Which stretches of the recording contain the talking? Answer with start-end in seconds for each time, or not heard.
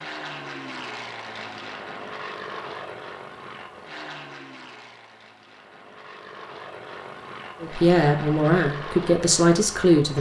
7.6-10.1.